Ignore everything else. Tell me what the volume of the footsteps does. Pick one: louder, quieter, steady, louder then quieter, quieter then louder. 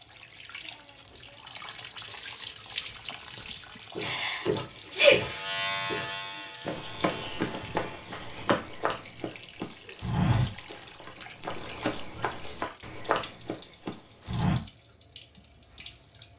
steady.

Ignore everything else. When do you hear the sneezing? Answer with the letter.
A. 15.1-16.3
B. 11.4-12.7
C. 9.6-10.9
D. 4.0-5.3
D.